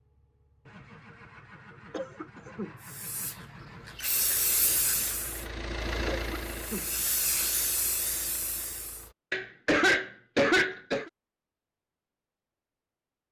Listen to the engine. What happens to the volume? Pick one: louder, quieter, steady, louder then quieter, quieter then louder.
louder then quieter.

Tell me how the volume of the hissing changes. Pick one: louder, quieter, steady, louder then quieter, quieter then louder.
quieter then louder.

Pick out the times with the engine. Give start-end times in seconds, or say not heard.
0.0-9.2.